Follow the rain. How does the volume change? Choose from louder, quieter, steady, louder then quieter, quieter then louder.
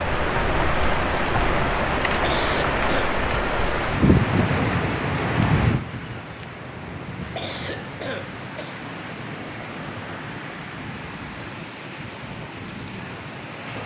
quieter.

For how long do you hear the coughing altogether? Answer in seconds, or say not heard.
2 s.